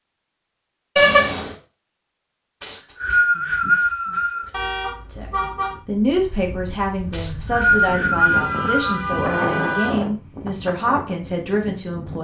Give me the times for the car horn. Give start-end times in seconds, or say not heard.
0.9-1.6, 4.5-5.8, 8.2-10.0.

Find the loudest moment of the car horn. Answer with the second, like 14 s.
1 s.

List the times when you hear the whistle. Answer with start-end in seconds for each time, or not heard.
2.6-4.5, 7.1-9.0.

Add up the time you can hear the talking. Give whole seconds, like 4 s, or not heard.
7 s.